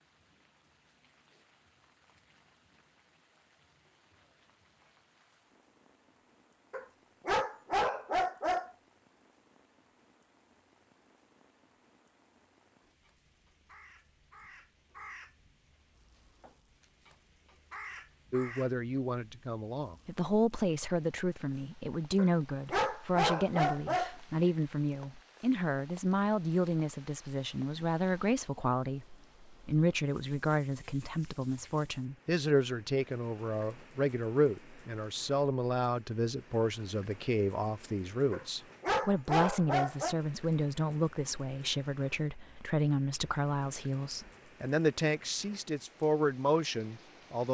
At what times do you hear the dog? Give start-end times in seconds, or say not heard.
6.7-8.7, 22.1-24.1, 38.3-40.1.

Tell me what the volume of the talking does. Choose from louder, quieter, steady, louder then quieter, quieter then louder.
steady.